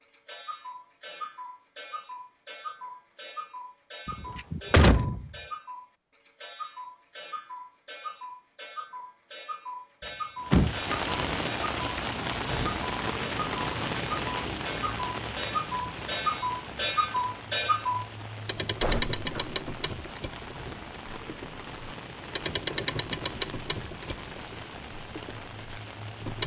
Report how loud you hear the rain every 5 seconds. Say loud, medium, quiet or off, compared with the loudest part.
off, off, loud, medium, medium, medium.